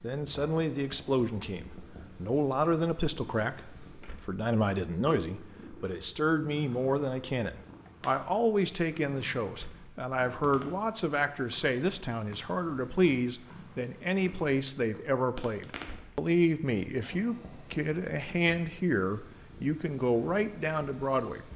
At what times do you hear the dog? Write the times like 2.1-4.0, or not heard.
not heard.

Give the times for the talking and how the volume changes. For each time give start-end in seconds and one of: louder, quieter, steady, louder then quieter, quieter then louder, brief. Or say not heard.
0.0-21.4 steady.